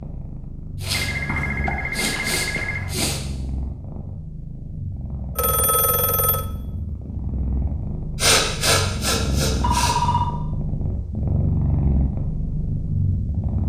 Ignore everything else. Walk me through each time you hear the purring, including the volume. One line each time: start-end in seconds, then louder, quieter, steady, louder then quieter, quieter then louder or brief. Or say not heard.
0.0-13.6 louder.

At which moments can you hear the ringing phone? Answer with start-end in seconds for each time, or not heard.
0.9-3.0, 5.3-6.5, 9.6-10.3.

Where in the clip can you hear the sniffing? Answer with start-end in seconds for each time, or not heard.
0.8-3.2, 8.2-9.9.